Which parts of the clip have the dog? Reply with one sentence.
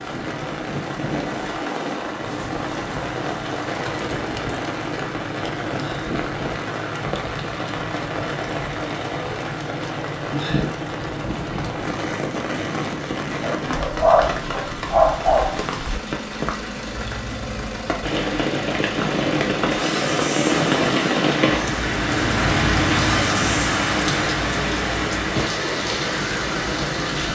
The dog can be heard from 13.4 to 15.6 s.